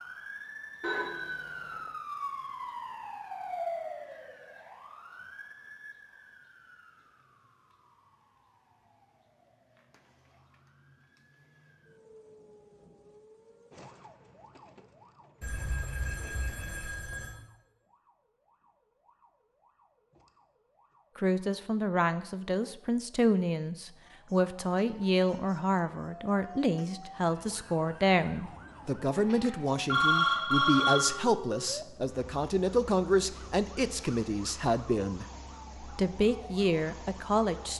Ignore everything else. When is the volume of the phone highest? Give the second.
30 s.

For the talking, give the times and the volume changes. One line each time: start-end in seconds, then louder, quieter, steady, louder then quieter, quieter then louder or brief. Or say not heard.
21.1-37.7 steady.